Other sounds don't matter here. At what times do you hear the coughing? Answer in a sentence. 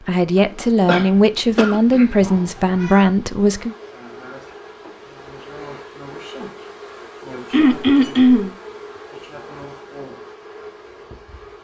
The coughing can be heard from 0.8 to 2.0 s and from 7.5 to 8.5 s.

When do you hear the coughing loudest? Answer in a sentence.
The volume of the coughing peaks at 8 seconds.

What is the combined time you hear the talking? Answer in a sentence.
You can hear the talking for 4 seconds altogether.